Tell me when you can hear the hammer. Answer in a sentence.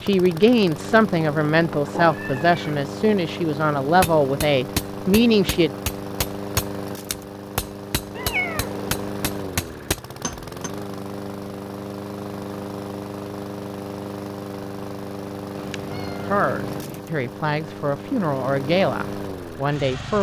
The hammer can be heard from 4.0 to 10.7 s.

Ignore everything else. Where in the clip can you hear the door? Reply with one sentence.
The door can't be heard in this clip.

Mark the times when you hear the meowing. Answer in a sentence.
The meowing can be heard from 1.6 to 2.9 s, from 8.2 to 8.9 s and from 15.6 to 17.0 s.